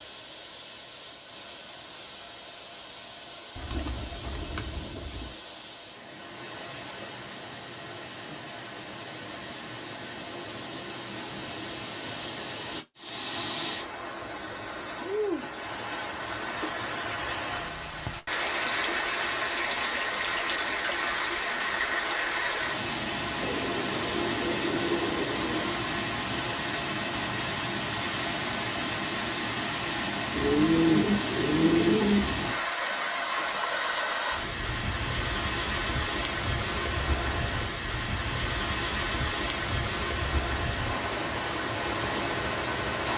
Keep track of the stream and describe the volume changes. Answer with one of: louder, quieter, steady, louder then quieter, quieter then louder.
louder.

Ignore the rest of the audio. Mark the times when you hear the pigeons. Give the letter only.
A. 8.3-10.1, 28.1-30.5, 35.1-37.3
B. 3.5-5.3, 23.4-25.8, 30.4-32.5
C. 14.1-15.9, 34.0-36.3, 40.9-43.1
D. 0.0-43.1
B.